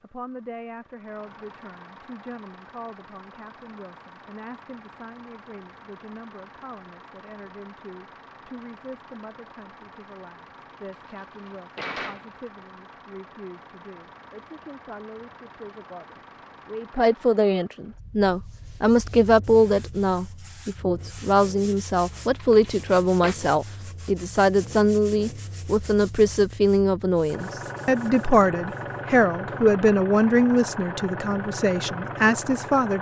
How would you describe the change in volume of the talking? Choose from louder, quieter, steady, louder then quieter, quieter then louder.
louder.